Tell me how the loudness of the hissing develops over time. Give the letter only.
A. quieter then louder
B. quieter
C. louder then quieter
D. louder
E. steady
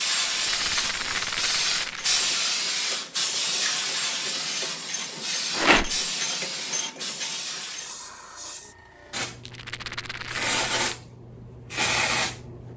A.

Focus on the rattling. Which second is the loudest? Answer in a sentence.
The loudest moment of the rattling is at 6 seconds.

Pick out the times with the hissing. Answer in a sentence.
You can hear the hissing from 0.0 to 12.7 s.